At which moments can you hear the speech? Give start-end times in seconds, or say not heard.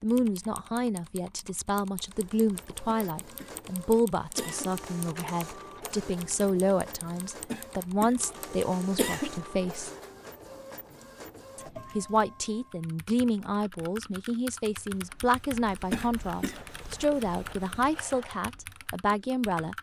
0.0-9.9, 11.6-19.7.